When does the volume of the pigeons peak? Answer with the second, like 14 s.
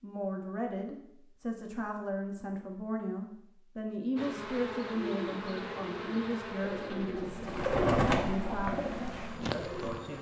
8 s.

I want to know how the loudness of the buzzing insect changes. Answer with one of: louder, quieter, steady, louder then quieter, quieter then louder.
quieter then louder.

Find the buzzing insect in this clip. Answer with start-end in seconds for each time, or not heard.
4.2-10.1.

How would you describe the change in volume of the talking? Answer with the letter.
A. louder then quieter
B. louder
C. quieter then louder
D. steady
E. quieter
D.